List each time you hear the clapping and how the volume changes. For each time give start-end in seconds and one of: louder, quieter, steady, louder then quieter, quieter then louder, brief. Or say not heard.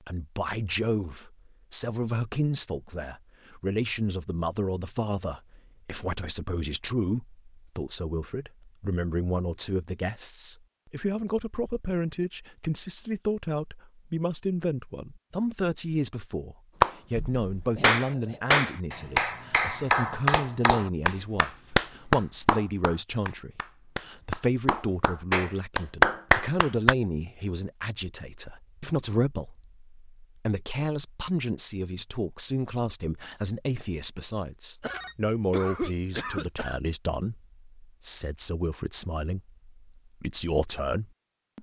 16.8-26.9 quieter then louder.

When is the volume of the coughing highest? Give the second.
36 s.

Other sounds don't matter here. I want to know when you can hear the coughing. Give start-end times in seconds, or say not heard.
17.8-18.4, 34.8-36.8.